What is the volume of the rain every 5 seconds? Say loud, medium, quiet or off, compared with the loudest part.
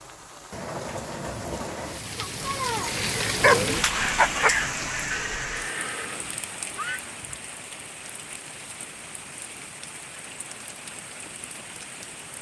loud, medium, quiet.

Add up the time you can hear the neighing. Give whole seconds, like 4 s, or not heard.
2 s.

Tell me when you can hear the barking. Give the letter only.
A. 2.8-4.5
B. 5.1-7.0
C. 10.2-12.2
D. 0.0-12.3
A.